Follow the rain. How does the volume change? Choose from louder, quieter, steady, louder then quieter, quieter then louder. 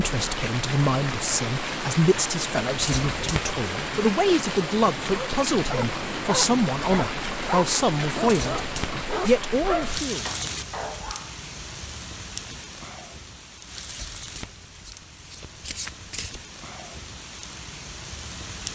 quieter.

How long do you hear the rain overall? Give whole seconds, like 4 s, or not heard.
19 s.